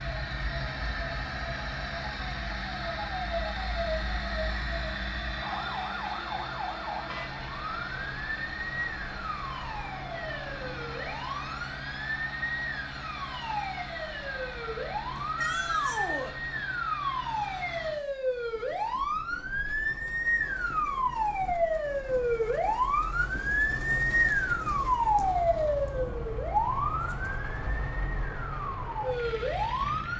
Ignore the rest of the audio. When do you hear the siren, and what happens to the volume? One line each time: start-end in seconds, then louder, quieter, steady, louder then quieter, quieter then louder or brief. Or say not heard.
0.0-30.1 louder.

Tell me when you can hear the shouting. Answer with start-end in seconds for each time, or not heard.
15.3-16.4.